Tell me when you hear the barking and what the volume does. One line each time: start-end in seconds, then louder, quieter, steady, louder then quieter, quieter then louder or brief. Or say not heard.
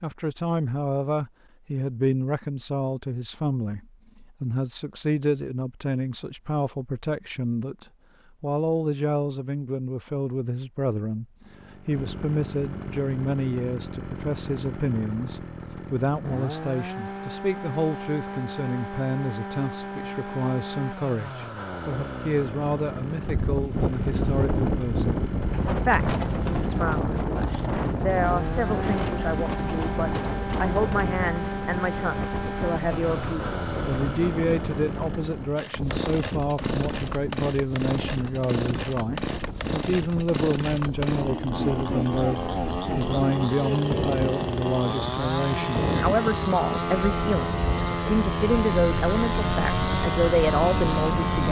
not heard.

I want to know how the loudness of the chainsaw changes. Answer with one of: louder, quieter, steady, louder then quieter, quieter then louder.
louder.